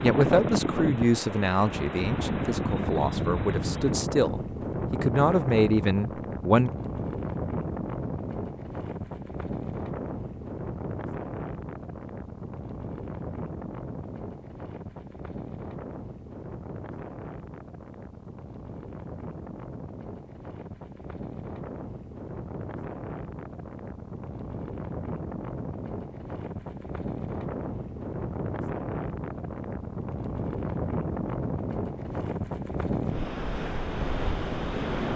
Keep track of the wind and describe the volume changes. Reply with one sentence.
The volume of the wind goes down, then up.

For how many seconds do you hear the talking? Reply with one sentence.
The talking can be heard for 7 seconds in total.